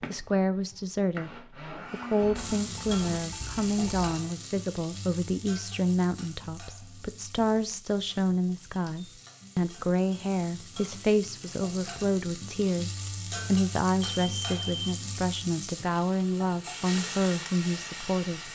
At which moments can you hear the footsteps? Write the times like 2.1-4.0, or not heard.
not heard.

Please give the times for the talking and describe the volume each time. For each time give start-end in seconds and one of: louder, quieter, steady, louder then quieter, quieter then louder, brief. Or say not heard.
0.1-18.4 steady.